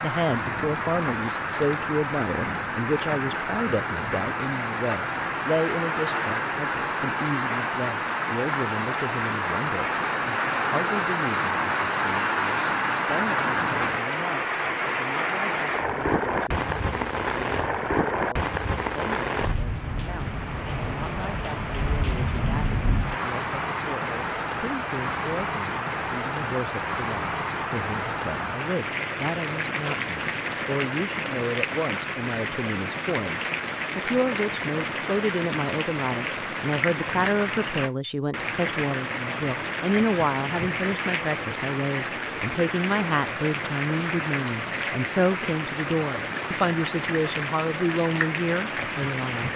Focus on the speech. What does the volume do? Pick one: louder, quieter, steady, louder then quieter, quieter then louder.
quieter then louder.